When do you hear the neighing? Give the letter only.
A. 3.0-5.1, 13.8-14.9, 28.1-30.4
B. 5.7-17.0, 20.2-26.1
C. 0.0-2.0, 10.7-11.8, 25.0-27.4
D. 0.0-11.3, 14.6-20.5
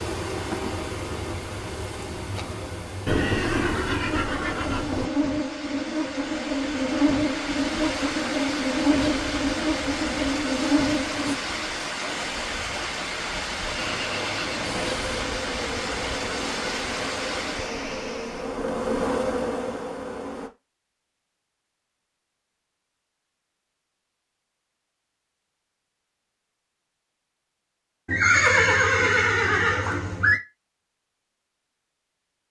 A.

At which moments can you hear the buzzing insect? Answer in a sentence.
You can hear the buzzing insect from 0.0 to 11.3 s and from 14.6 to 20.5 s.